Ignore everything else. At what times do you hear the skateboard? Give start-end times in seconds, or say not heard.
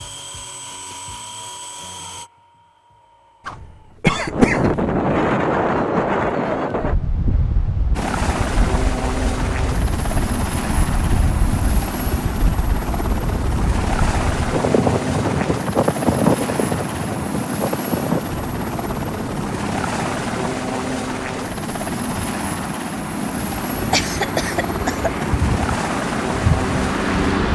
not heard.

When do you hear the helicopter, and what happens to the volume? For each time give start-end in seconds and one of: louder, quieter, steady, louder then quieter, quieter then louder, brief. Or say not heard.
0.0-4.0 quieter
7.9-27.5 steady.